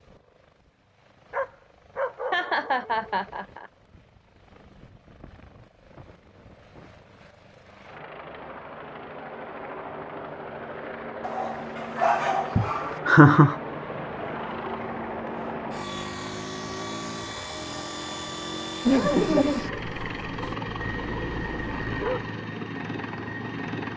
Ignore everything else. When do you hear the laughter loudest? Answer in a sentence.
The loudest moment of the laughter is at 13 seconds.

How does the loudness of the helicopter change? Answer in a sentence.
The volume of the helicopter goes up.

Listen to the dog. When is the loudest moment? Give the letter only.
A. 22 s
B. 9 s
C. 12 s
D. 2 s
C.